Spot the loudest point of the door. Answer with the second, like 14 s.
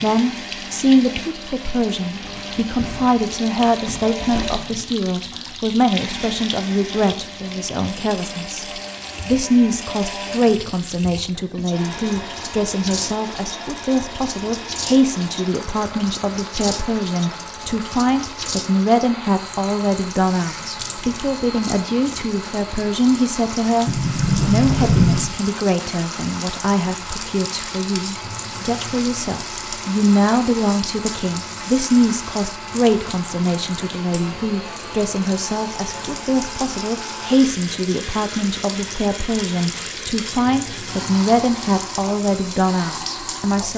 25 s.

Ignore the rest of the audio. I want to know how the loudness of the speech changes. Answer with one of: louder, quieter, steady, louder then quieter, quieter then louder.
steady.